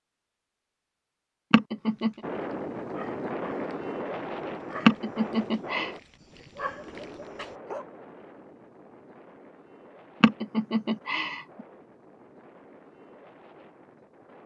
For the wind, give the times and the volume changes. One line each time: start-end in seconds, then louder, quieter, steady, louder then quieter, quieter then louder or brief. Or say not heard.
2.2-14.4 quieter.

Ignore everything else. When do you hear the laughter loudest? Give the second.
5 s.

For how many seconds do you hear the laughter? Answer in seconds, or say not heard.
3 s.